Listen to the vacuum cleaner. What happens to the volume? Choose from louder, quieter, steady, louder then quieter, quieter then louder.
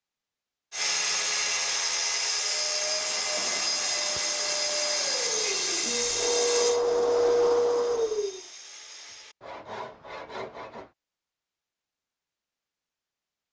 louder.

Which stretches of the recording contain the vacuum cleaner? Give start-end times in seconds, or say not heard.
2.4-8.4.